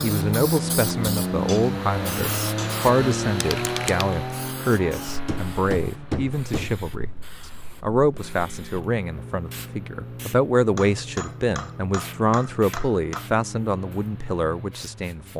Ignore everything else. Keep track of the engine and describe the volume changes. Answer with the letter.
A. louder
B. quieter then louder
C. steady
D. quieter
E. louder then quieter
D.